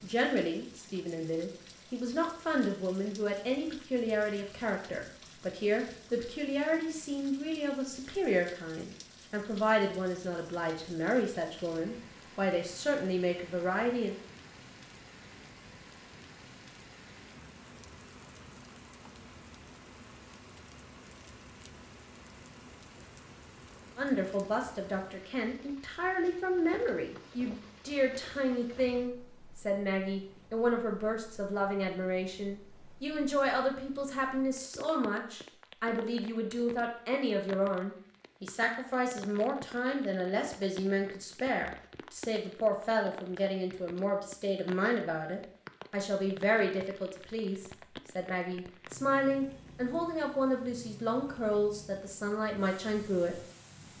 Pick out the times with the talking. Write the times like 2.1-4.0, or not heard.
0.0-14.2, 23.9-53.4.